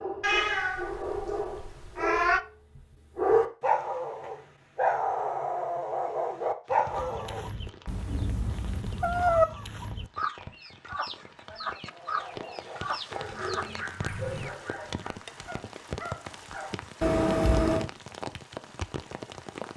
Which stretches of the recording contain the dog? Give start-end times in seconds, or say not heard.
0.0-7.5, 11.8-16.8.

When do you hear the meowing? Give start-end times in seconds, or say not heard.
0.2-2.4, 7.8-9.4, 17.0-17.9.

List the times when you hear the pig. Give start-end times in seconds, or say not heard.
not heard.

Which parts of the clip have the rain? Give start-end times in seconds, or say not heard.
6.7-19.7.